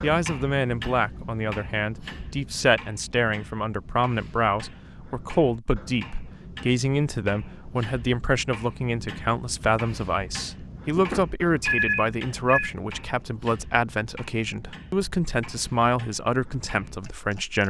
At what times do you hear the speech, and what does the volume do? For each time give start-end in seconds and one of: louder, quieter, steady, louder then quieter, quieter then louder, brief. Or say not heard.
0.0-17.6 steady.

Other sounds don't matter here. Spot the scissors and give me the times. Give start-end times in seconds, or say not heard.
not heard.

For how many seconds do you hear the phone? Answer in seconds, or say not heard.
2 s.